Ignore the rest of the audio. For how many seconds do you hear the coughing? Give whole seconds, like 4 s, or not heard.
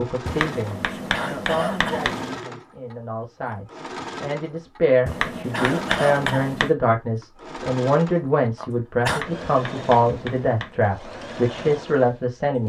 4 s.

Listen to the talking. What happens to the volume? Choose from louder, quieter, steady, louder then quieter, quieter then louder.
louder.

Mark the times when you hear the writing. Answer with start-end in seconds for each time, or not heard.
0.2-2.5, 5.0-6.8, 9.1-10.8.